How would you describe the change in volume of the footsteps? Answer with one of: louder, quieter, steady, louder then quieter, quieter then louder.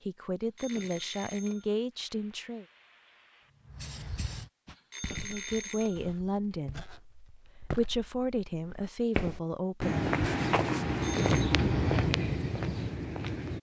louder.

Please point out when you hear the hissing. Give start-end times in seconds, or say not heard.
1.9-4.5.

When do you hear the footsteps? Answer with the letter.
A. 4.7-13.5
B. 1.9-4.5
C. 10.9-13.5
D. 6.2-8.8
A.